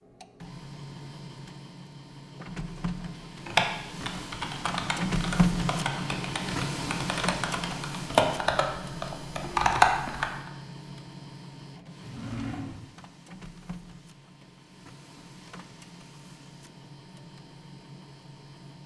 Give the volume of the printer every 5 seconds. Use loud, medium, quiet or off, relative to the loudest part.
medium, loud, quiet, quiet.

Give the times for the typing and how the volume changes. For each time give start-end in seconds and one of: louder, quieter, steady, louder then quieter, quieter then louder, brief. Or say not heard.
3.5-10.5 louder.